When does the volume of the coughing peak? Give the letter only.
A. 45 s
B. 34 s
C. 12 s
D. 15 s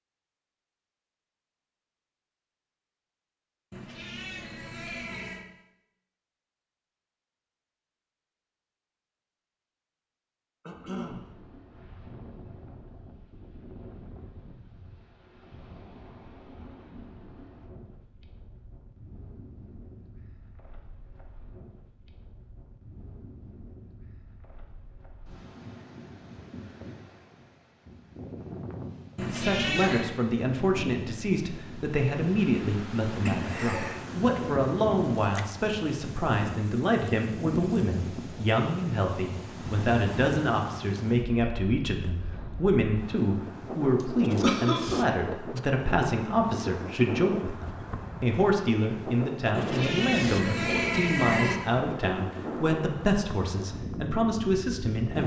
A.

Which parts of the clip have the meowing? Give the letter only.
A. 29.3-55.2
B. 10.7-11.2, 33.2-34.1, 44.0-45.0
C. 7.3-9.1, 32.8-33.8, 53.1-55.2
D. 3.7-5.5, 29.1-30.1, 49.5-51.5
D.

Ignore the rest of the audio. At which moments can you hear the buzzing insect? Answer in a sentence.
The buzzing insect can't be heard in this clip.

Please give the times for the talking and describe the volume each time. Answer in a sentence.
You can hear the talking from 29.3 to 55.2 s, at a steady volume.